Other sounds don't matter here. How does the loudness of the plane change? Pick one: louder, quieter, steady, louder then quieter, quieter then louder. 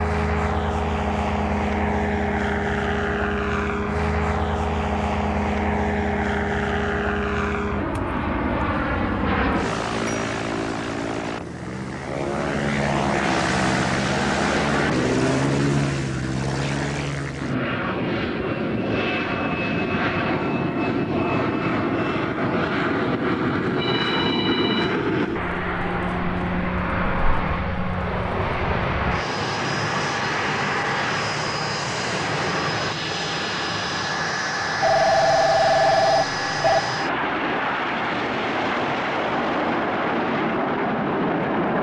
steady.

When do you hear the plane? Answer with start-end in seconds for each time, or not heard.
0.0-41.7.